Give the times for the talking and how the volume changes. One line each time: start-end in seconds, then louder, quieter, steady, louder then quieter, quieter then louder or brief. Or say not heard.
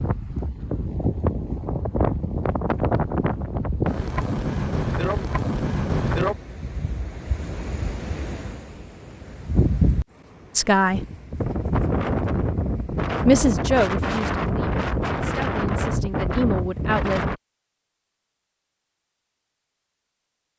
10.6-11.0 brief
13.2-17.2 quieter then louder.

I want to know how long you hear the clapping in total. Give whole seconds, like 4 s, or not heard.
not heard.